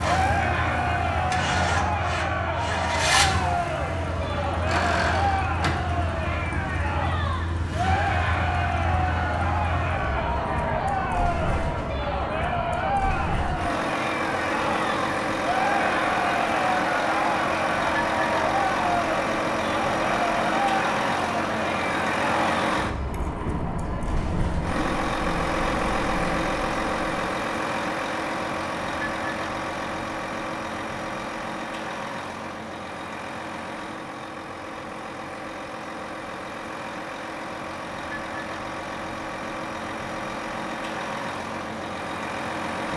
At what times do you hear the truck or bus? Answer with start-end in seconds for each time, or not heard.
0.0-42.9.